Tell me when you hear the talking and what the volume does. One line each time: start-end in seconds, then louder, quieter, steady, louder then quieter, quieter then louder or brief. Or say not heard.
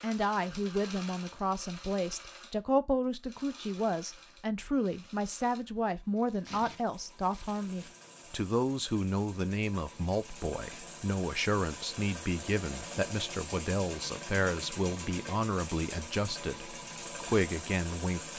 0.0-18.3 steady.